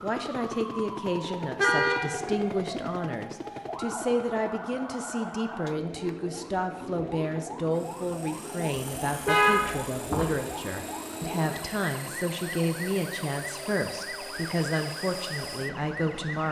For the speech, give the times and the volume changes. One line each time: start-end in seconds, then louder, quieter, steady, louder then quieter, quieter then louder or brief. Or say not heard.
0.0-16.4 steady.